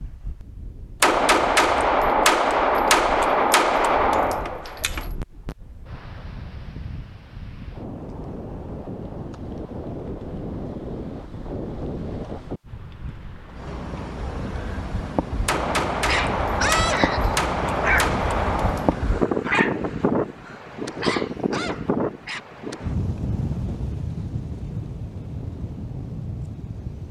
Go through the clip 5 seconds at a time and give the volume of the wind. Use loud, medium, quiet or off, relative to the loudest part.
quiet, medium, medium, loud, loud, medium.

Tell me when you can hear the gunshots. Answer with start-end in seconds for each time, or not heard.
1.0-5.1, 15.4-19.1.